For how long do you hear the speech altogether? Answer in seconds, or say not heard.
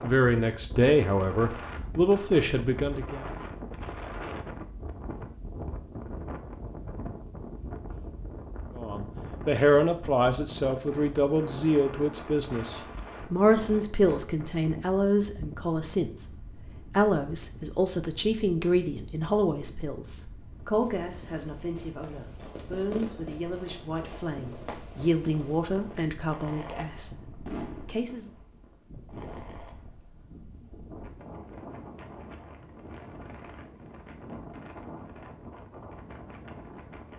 22 s.